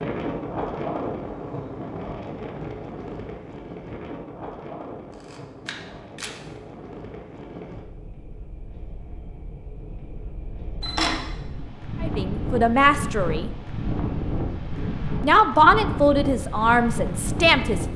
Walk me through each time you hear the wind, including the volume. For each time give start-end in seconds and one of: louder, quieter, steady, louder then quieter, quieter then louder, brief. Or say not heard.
0.0-17.9 quieter then louder.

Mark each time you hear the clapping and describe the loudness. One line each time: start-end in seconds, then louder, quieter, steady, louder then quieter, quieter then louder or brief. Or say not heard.
not heard.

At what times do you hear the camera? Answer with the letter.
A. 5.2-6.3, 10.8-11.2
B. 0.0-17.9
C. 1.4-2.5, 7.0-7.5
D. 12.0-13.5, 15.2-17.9
A.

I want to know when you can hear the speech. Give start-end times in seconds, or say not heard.
12.0-13.5, 15.2-17.9.